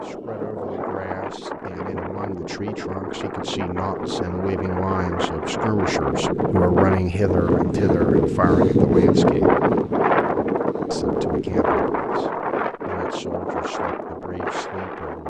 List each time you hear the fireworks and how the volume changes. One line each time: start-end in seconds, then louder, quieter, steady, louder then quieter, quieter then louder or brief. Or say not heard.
not heard.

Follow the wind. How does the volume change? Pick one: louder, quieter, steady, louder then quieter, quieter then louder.
louder then quieter.